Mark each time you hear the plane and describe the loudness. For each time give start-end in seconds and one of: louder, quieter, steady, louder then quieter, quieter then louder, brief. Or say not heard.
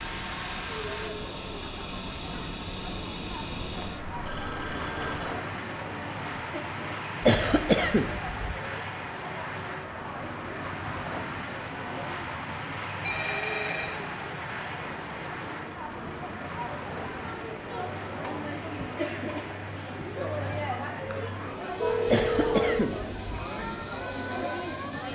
0.0-25.1 quieter.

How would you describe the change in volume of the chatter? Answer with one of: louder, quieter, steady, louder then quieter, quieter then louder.
louder.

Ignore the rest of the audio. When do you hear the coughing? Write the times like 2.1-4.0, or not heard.
7.2-8.6, 22.1-23.1.